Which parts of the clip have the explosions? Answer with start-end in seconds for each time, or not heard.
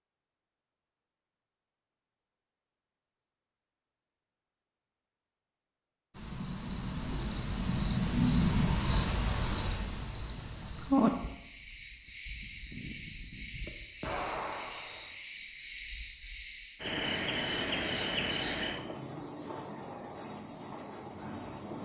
14.0-15.1.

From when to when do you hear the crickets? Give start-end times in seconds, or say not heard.
6.1-21.7.